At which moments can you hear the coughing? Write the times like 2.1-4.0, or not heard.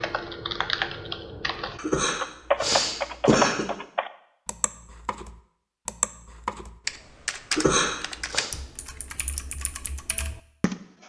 1.8-3.6, 7.5-8.5.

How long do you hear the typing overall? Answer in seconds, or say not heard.
11 s.